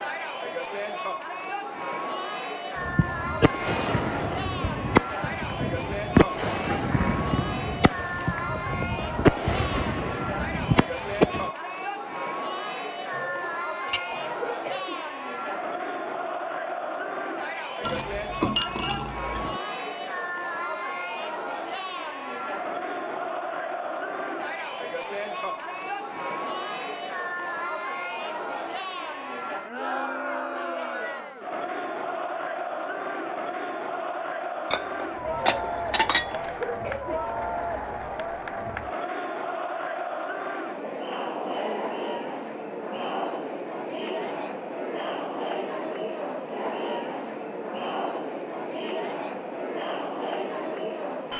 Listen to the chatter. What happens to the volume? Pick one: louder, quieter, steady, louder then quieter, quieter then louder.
steady.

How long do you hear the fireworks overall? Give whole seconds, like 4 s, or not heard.
9 s.